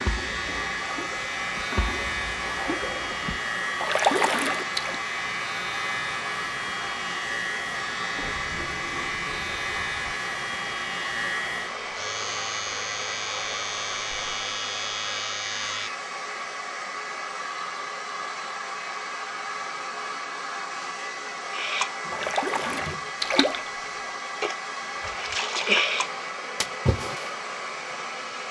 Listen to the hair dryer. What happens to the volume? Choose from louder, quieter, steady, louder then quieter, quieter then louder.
steady.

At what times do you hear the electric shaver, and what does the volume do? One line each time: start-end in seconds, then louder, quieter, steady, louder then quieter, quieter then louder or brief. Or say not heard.
0.0-15.9 steady.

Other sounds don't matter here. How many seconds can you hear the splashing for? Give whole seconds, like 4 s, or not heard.
10 s.